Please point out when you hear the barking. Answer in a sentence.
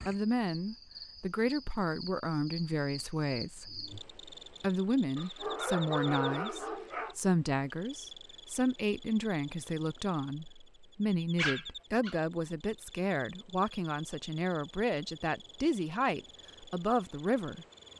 The barking can be heard from 5.2 to 7.2 s and from 11.3 to 12.2 s.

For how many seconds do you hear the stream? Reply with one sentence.
You can't hear the stream here.